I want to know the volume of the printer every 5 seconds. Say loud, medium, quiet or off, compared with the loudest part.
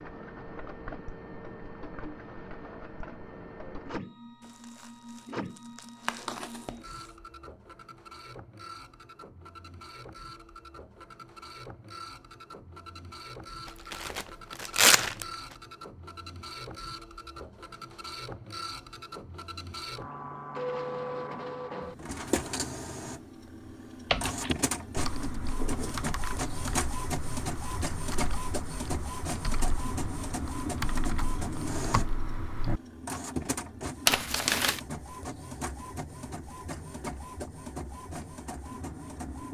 medium, medium, medium, medium, loud, loud, loud, medium.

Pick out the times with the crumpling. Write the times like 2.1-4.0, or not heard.
4.6-6.8, 13.7-15.2, 34.0-34.8.